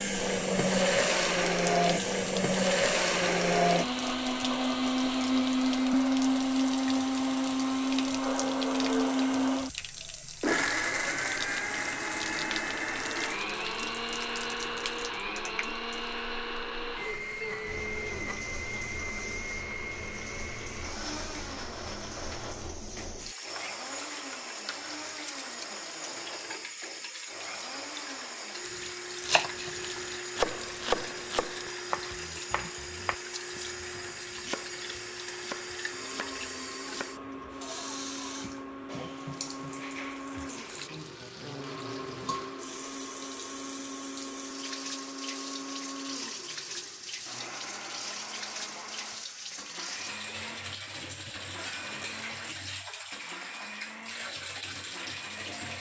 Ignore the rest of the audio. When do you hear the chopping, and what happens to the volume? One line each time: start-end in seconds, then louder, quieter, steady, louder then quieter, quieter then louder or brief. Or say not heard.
28.6-37.5 quieter.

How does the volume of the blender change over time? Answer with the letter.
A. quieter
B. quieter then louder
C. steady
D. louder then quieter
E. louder
A.